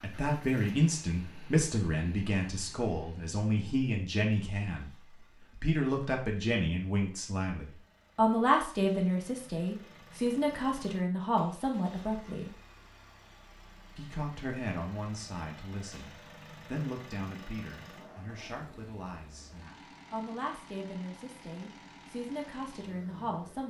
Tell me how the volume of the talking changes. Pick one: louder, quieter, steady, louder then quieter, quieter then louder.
quieter.